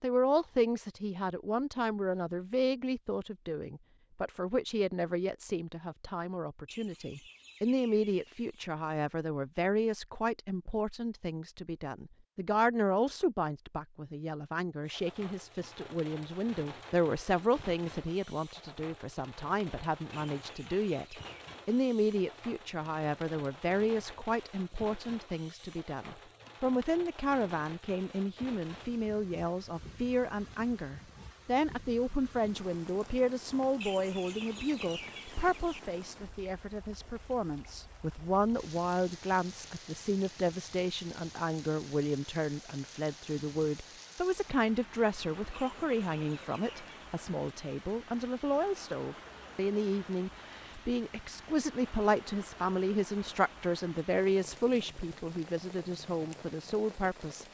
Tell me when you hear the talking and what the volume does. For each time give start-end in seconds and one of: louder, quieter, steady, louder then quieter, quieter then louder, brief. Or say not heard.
0.0-57.4 steady.